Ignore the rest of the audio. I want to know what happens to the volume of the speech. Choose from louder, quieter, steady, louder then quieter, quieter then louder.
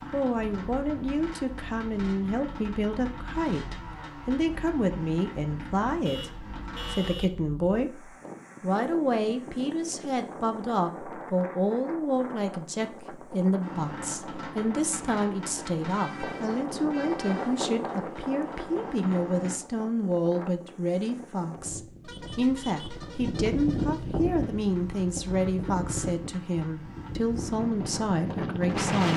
steady.